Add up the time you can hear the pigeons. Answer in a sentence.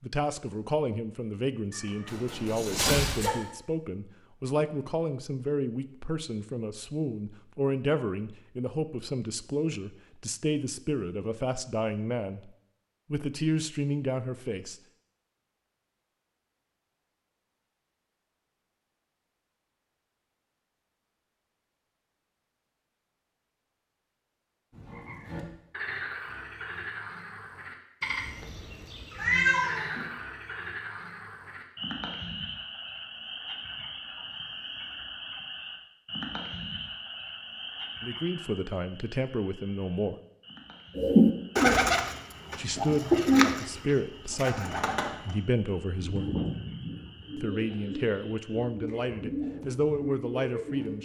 You can hear the pigeons for 10 seconds altogether.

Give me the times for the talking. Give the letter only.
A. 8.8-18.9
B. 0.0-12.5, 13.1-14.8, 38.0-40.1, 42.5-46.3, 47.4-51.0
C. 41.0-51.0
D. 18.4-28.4
B.